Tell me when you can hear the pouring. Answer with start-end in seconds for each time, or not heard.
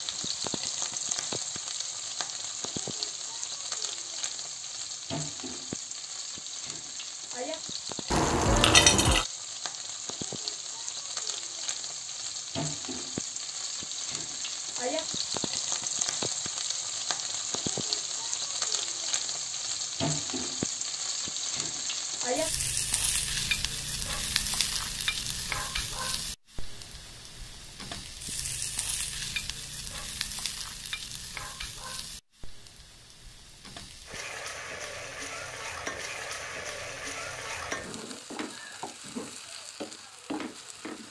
8.1-9.2.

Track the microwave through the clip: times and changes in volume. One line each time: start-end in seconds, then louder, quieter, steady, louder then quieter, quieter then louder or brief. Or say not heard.
not heard.